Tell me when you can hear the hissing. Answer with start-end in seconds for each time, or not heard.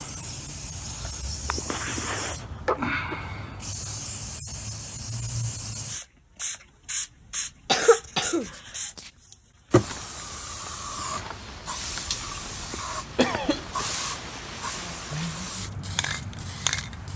0.0-17.1.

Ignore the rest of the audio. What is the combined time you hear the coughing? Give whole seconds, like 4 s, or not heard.
4 s.